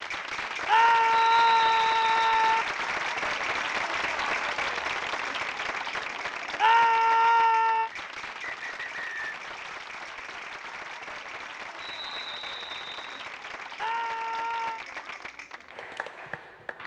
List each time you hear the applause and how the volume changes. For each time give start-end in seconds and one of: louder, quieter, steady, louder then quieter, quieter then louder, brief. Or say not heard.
0.0-16.8 quieter.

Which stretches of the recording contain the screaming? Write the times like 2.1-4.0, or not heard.
0.7-2.6, 6.5-7.9, 13.8-14.8.